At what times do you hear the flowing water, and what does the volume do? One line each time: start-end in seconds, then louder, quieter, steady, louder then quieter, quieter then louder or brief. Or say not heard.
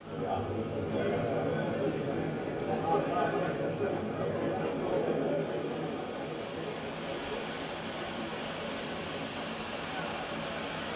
0.0-10.9 louder.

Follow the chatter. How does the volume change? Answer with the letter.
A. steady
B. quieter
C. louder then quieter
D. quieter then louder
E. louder
B.